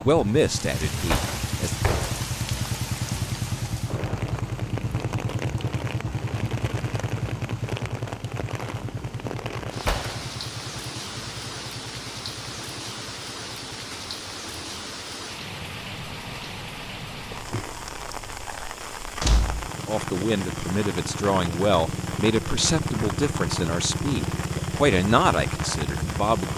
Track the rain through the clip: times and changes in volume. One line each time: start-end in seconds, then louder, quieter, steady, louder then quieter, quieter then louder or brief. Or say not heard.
0.1-26.5 steady.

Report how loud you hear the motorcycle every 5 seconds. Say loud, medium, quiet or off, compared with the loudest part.
loud, loud, medium, quiet, loud, loud.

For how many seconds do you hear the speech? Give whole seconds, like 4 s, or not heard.
8 s.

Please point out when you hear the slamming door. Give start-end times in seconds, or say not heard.
1.1-2.2, 9.8-10.2, 19.2-19.7.